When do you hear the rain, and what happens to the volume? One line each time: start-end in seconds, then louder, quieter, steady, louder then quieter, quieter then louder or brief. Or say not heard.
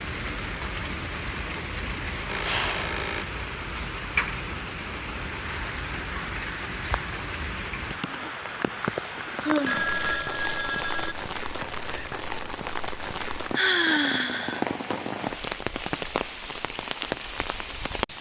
0.0-18.1 steady.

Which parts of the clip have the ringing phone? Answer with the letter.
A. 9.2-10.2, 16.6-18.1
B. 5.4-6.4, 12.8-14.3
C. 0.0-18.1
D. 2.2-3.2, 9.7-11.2
D.